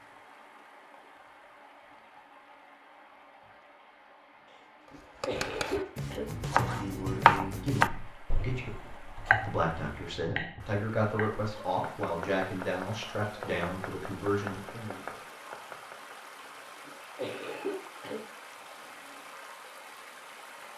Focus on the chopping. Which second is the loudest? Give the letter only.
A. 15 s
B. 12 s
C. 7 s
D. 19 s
C.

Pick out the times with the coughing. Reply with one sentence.
The coughing can be heard from 4.9 to 6.2 s and from 16.9 to 18.2 s.